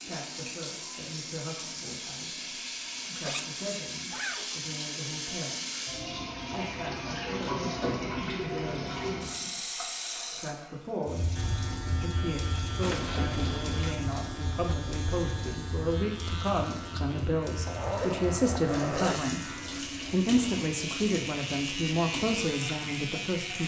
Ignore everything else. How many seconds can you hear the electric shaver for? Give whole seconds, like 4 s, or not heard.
12 s.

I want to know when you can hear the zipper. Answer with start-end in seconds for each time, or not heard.
3.0-4.6, 12.8-13.9, 17.6-19.2.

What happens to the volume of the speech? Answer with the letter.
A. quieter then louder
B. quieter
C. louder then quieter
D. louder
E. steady
D.